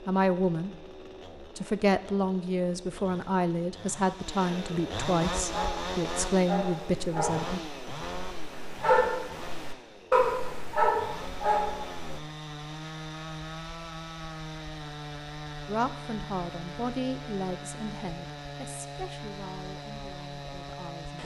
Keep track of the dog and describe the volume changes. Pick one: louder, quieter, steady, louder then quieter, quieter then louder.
louder.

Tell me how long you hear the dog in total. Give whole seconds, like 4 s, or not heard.
7 s.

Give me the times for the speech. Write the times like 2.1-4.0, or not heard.
0.0-0.8, 1.4-7.6, 15.7-21.2.